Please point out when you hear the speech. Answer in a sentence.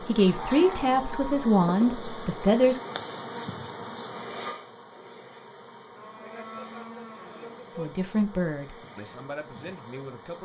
You can hear the speech from 0.0 to 2.8 s and from 7.8 to 10.4 s.